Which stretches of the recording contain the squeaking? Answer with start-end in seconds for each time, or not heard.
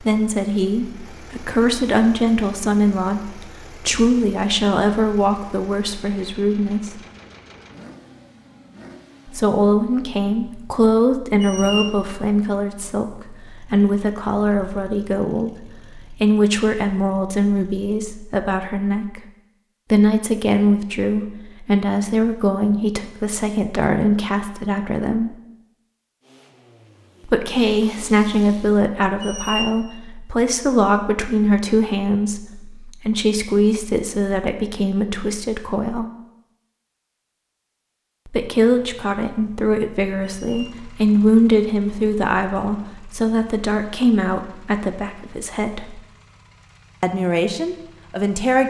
11.4-11.9, 29.2-29.7, 40.2-40.8.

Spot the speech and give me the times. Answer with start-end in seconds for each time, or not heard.
0.0-7.0, 9.2-19.3, 19.9-25.4, 27.2-36.1, 38.2-46.0, 47.0-48.6.